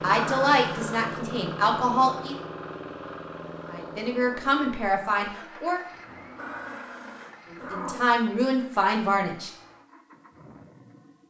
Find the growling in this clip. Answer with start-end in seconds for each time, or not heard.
0.1-1.1, 6.3-8.2.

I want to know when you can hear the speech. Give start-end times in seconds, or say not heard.
0.0-2.4, 3.7-5.8, 7.5-9.5.